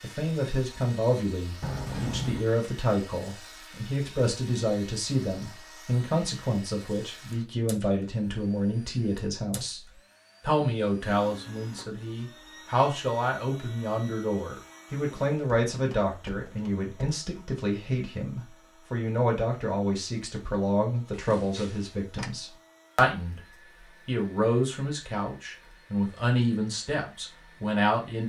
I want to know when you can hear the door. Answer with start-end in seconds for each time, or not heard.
1.6-2.5, 15.7-17.1, 21.1-22.3.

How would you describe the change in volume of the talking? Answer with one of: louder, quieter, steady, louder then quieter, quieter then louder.
steady.